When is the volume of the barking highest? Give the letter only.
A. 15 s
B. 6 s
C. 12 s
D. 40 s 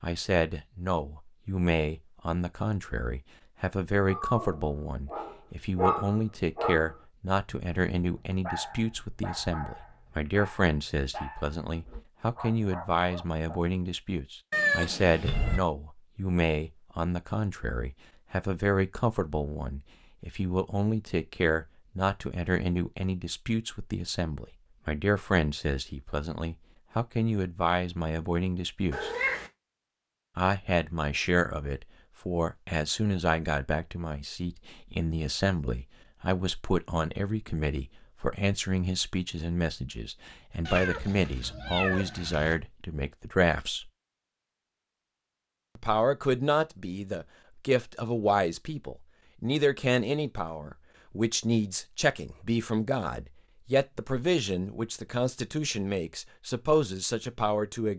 B.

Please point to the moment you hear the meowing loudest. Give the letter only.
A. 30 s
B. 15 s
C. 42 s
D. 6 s
B.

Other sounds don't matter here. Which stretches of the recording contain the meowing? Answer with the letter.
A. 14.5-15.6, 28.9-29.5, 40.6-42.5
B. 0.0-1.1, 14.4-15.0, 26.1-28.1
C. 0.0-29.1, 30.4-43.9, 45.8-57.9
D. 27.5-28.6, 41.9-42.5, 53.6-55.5
A.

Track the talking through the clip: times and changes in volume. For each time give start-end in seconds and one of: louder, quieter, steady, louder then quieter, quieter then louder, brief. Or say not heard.
0.0-29.1 steady
30.4-43.9 steady
45.8-57.9 steady.